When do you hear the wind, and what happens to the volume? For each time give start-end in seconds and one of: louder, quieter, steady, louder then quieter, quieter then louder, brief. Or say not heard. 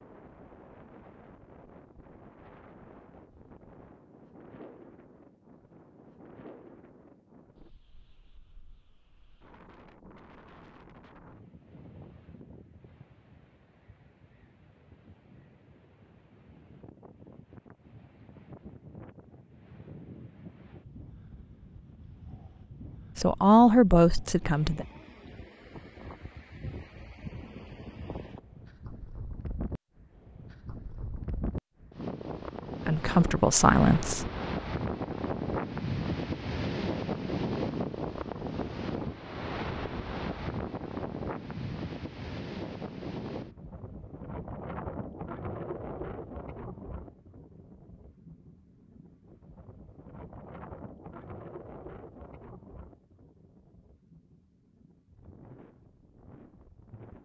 0.0-57.2 louder then quieter.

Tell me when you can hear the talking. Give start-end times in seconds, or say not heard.
23.1-24.9, 32.9-34.3.